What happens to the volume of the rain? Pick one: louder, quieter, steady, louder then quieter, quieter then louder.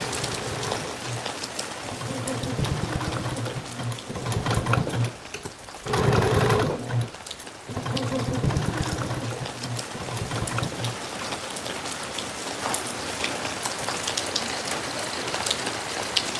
quieter then louder.